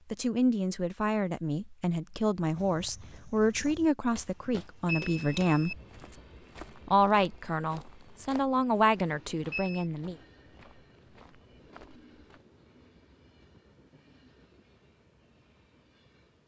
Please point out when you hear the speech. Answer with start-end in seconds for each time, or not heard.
0.1-5.8, 6.8-10.2.